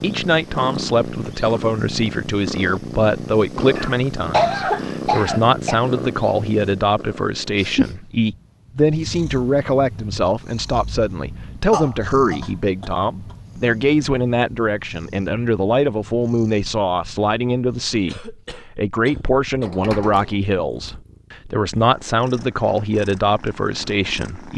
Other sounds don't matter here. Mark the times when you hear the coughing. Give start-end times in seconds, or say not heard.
3.8-5.8, 11.7-12.9, 18.1-19.6.